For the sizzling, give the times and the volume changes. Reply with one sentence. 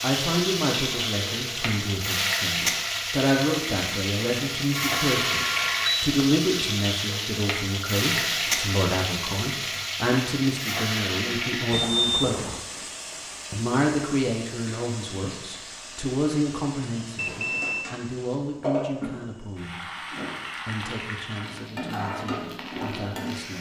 The sizzling can be heard from 0.0 to 23.5 s, getting quieter then louder.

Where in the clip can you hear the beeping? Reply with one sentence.
The beeping can be heard from 4.8 to 6.1 s, from 11.7 to 12.6 s and from 17.1 to 17.9 s.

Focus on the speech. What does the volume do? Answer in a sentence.
The loudness of the speech goes down.